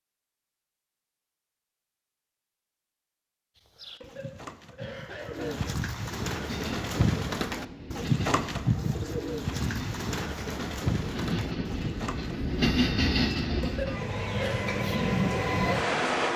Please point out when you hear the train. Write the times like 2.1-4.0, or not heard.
6.3-16.3.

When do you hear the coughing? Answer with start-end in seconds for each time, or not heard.
4.0-5.8, 13.6-14.7.